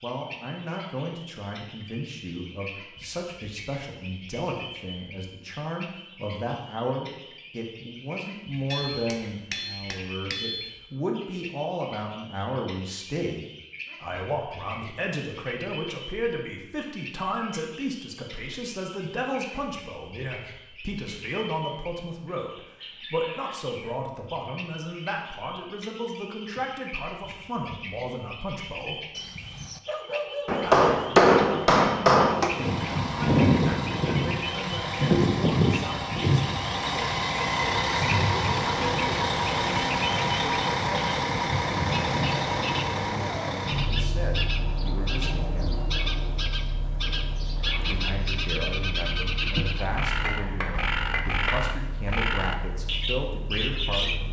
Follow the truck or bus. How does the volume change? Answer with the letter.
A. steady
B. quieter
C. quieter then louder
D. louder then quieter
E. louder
B.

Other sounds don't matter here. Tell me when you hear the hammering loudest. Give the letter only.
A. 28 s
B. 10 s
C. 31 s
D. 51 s
C.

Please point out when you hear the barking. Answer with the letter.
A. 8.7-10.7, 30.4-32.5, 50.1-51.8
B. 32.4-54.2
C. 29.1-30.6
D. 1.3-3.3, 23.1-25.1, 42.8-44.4
C.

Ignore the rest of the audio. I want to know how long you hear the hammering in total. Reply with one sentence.
You can hear the hammering for 6 seconds altogether.